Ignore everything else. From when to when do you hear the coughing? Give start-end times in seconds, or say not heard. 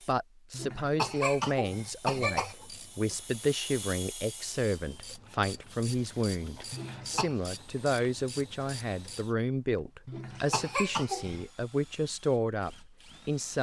0.5-2.5, 6.7-7.3, 10.1-11.4.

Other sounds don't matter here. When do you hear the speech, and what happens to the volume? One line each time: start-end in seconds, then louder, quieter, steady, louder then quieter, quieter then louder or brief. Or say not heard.
0.1-13.5 steady.